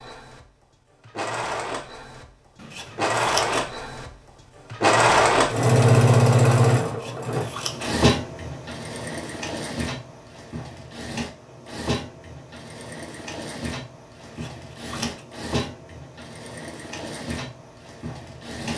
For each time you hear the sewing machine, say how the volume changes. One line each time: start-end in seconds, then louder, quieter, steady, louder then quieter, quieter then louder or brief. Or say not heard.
0.0-18.7 louder then quieter.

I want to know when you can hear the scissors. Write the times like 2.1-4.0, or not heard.
2.5-3.7, 6.8-8.1, 14.2-15.2.